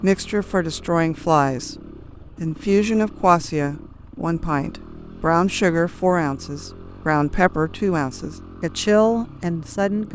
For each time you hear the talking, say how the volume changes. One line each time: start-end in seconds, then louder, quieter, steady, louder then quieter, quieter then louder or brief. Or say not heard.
0.0-1.8 brief
2.4-10.1 steady.